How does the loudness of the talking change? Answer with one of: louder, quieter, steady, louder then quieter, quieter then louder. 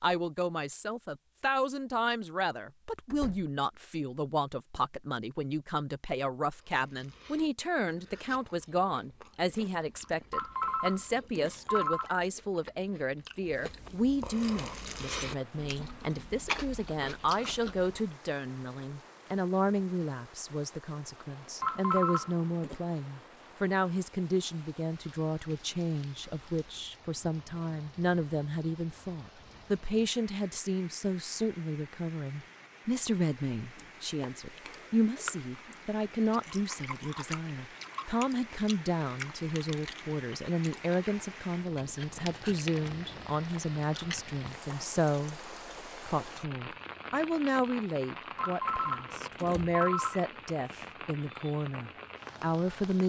steady.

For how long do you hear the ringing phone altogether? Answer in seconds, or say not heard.
5 s.